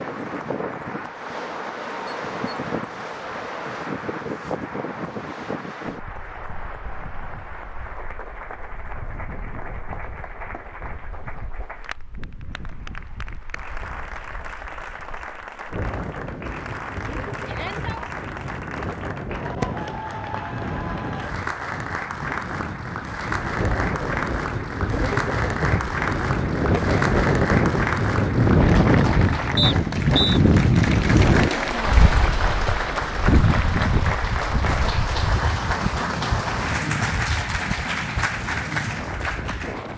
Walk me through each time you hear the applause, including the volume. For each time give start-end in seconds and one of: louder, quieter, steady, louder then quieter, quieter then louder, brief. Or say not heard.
0.0-39.9 louder.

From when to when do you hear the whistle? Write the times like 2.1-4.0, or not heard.
29.6-30.4.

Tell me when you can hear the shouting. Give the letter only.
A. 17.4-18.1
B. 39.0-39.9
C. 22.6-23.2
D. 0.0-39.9
A.